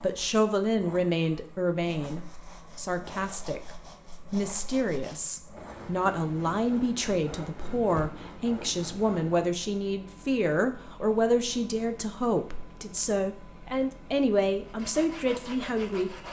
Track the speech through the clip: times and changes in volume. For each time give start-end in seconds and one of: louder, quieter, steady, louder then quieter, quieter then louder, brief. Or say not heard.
0.0-16.2 steady.